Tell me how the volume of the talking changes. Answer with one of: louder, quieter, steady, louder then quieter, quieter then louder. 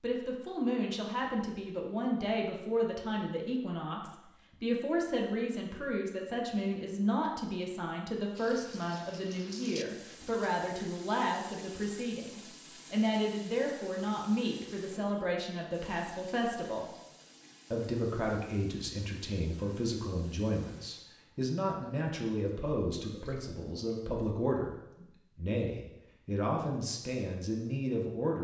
steady.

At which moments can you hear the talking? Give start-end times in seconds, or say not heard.
0.0-16.9, 17.7-28.3.